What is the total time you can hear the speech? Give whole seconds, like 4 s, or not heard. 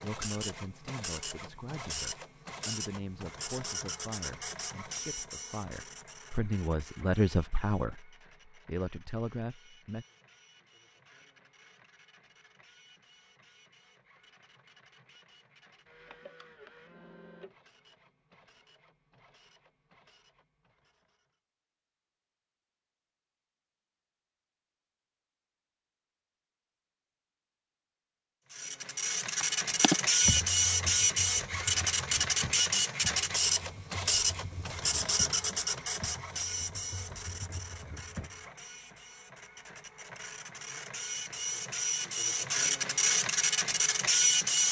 10 s.